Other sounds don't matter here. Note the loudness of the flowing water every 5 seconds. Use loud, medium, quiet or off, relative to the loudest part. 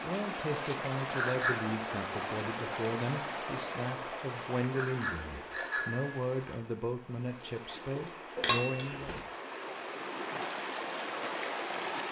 loud, medium, loud.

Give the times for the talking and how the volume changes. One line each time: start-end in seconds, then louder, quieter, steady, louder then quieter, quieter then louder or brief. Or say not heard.
0.0-9.2 steady.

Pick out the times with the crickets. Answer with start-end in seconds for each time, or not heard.
not heard.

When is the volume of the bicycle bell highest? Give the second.
6 s.